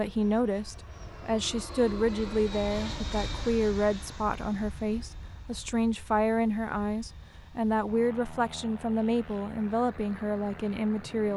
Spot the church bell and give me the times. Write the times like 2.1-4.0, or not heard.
not heard.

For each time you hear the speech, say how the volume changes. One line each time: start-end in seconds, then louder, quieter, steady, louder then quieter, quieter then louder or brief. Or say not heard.
0.0-11.3 steady.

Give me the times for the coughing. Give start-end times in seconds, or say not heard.
not heard.